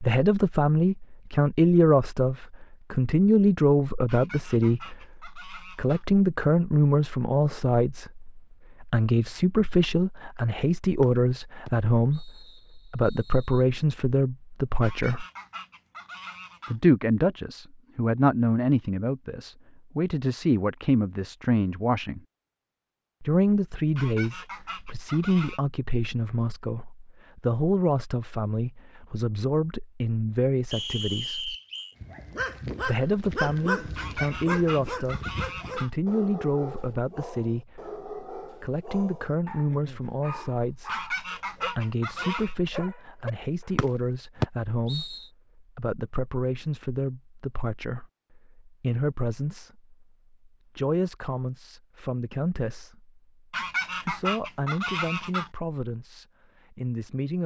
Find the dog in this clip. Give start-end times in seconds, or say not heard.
32.0-44.0.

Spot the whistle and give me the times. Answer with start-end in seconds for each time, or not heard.
11.0-13.6, 30.7-31.9, 43.8-45.2.